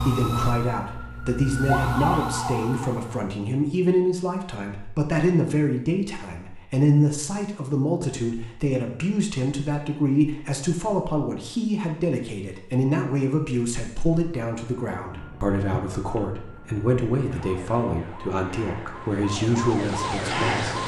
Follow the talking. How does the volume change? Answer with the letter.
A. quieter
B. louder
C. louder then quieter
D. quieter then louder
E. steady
E.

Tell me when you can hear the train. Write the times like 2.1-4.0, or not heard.
not heard.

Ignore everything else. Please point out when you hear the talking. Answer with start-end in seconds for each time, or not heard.
0.0-20.8.